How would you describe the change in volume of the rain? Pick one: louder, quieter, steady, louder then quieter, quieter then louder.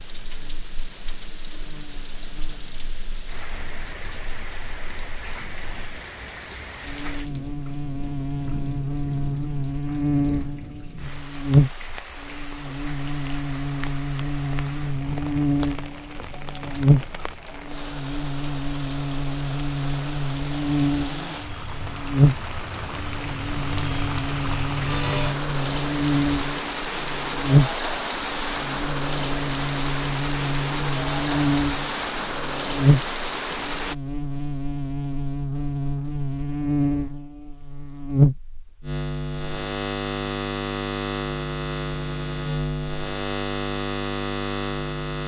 louder.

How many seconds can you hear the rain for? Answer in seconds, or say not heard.
34 s.